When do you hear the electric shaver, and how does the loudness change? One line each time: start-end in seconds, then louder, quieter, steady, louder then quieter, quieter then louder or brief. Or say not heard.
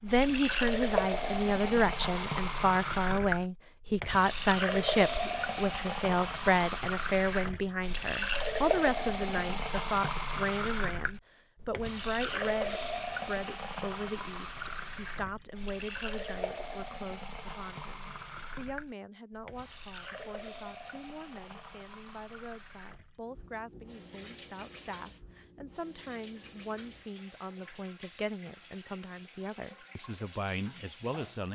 not heard.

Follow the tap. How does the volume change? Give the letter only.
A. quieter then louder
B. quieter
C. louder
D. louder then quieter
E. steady
B.